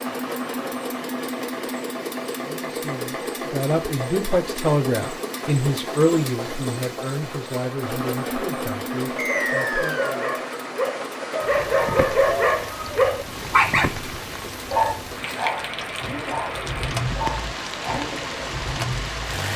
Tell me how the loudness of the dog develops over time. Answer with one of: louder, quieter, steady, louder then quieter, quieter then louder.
louder then quieter.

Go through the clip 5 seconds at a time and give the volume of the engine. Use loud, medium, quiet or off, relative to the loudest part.
loud, loud, medium, loud.